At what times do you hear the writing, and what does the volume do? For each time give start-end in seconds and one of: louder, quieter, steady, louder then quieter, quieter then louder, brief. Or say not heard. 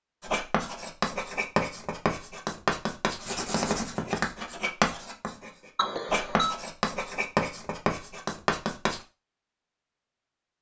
0.2-9.0 steady.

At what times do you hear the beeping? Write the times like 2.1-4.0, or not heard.
5.8-6.5.